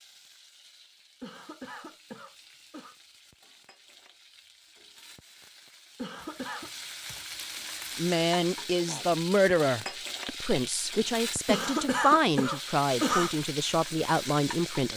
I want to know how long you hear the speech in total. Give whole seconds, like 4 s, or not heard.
7 s.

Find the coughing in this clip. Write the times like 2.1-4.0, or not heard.
1.2-3.0, 6.0-6.7, 11.4-13.3.